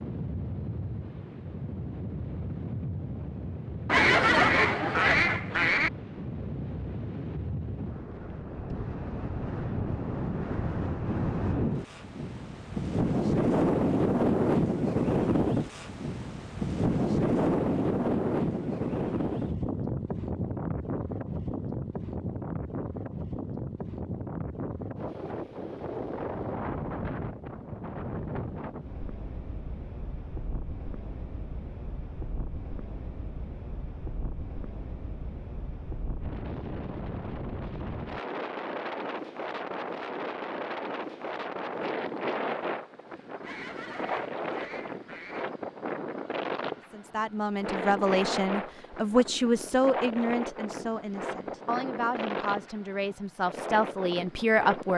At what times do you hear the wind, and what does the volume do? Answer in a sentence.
The wind can be heard from 0.0 to 54.9 s, getting louder then quieter.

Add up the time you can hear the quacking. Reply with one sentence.
The quacking can be heard for 4 seconds in total.